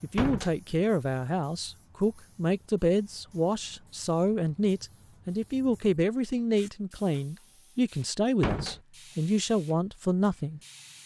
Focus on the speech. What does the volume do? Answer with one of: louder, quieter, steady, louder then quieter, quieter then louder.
steady.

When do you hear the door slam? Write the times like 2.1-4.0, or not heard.
0.1-0.6, 8.4-8.8.